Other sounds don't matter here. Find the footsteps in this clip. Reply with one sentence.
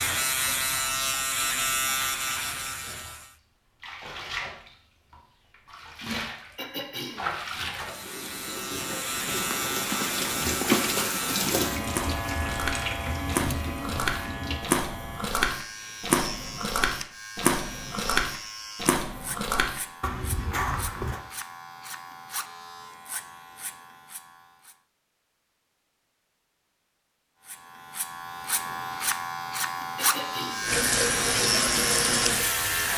You can hear the footsteps from 9.3 to 21.2 s.